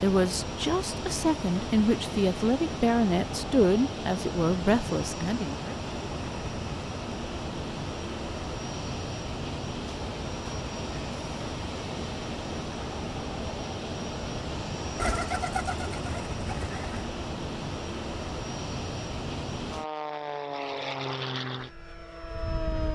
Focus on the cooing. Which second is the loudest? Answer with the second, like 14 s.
15 s.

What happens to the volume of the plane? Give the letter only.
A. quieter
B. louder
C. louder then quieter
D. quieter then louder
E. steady
E.